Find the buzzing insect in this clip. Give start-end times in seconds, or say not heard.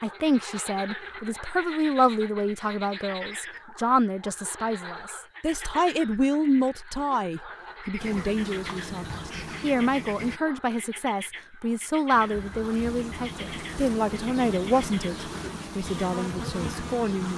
8.0-10.4, 12.1-17.3.